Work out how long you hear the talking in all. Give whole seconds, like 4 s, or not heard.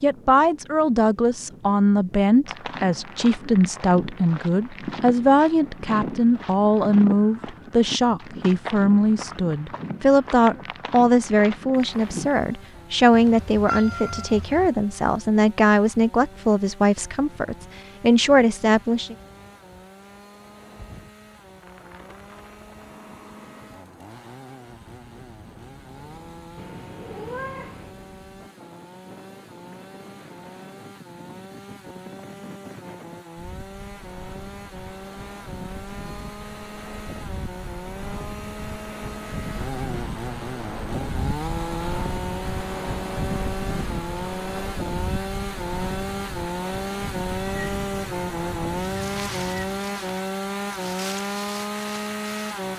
19 s.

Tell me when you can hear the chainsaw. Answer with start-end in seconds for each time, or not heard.
11.7-52.7.